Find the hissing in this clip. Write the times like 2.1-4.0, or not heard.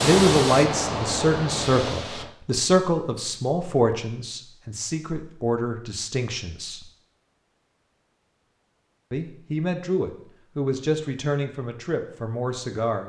0.0-2.4.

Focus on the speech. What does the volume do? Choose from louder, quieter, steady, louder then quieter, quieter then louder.
quieter.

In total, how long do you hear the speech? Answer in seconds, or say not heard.
11 s.